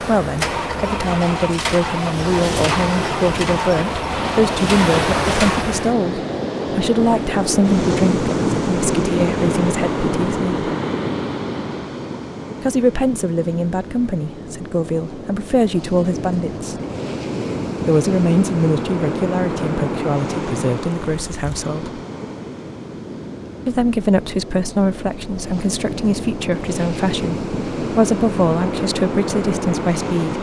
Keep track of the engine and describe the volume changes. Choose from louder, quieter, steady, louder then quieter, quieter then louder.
steady.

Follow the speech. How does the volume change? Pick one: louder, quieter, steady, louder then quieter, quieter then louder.
steady.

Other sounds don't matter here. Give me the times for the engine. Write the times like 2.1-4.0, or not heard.
0.2-5.7.